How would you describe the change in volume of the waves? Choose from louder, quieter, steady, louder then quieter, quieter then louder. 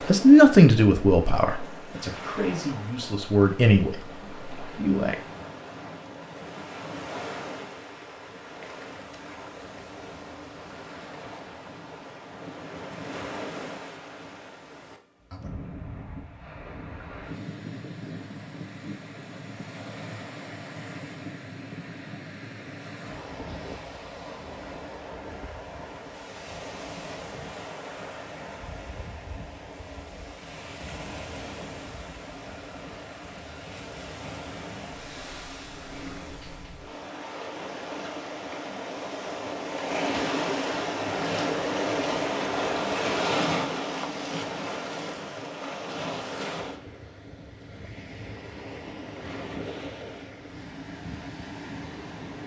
louder.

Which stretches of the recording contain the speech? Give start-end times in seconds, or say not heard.
0.1-5.2.